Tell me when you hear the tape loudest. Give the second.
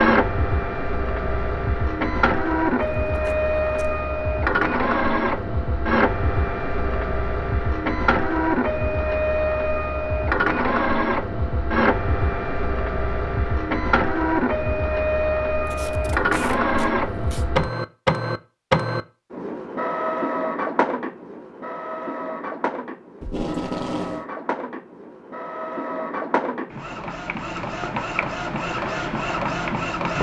24 s.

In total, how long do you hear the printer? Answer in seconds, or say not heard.
30 s.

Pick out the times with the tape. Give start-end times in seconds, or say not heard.
3.1-3.9, 15.7-17.4, 23.2-24.2.